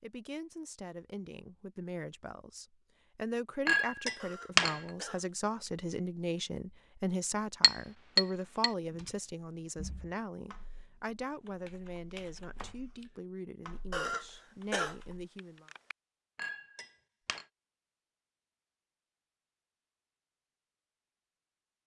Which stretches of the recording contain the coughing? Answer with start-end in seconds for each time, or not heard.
4.2-5.7, 13.9-15.9.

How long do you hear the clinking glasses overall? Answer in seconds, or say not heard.
3 s.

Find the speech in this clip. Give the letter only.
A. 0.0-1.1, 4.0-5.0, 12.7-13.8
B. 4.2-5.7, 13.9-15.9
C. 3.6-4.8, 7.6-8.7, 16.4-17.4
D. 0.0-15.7
D.